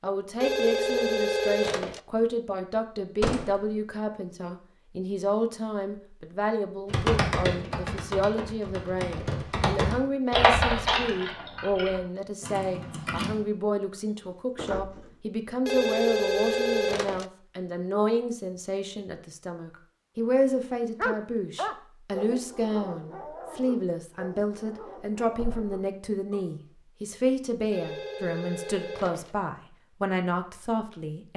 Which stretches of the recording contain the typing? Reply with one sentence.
You can hear the typing from 6.9 to 13.4 s.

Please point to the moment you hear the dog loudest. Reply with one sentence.
The volume of the dog peaks at 21 seconds.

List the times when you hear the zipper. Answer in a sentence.
The zipper can't be heard in this clip.